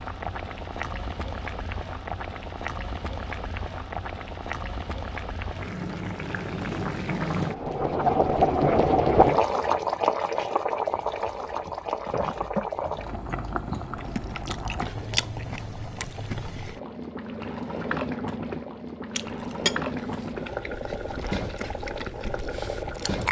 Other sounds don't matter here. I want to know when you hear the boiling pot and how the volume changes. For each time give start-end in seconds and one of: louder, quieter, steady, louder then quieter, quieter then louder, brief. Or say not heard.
0.0-23.2 louder then quieter.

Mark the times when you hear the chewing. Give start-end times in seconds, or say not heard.
10.9-16.8, 19.1-23.2.